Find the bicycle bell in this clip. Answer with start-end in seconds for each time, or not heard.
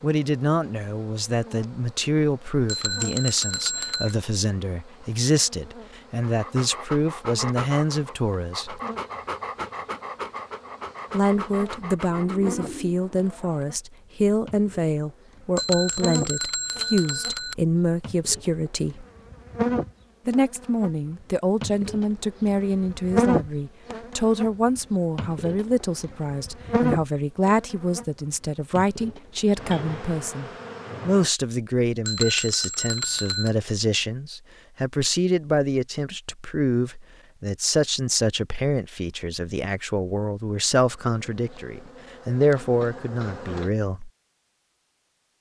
2.6-4.2, 15.6-17.6, 32.0-33.5.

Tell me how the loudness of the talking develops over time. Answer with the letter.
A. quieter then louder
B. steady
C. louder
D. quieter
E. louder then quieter
B.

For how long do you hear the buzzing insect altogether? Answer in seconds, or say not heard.
34 s.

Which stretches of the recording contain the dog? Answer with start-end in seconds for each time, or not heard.
6.2-12.8.